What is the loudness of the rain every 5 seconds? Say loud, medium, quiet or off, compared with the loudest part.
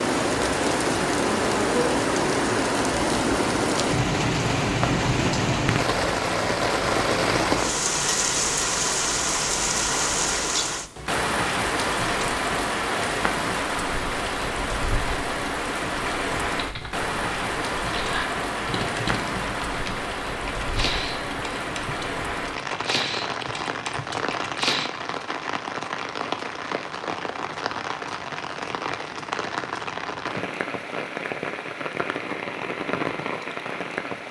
loud, loud, loud, medium, medium, medium, medium.